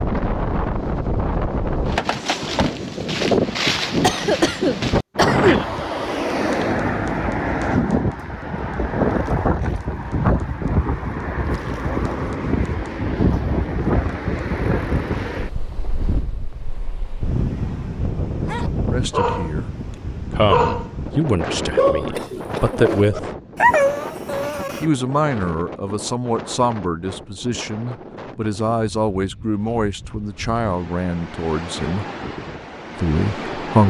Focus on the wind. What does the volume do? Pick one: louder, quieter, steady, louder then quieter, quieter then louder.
quieter.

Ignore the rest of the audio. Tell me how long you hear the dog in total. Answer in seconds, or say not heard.
5 s.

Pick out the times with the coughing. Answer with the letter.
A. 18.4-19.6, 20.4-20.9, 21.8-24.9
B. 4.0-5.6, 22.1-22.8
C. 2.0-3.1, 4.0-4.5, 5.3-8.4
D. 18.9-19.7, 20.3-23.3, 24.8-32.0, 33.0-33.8
B.